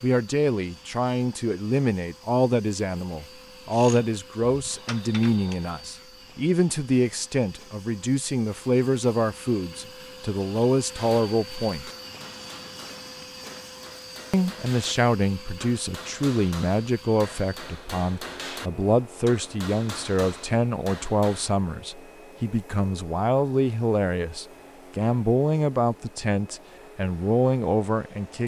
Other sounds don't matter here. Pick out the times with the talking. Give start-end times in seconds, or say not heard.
0.0-11.9, 14.3-28.4.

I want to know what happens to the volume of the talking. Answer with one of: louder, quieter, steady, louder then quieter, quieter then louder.
steady.